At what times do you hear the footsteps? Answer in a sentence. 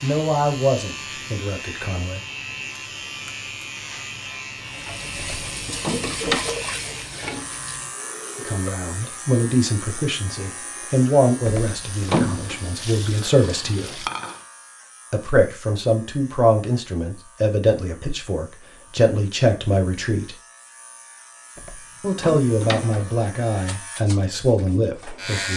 The footsteps can't be heard in this clip.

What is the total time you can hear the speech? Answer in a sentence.
You can hear the speech for 17 seconds altogether.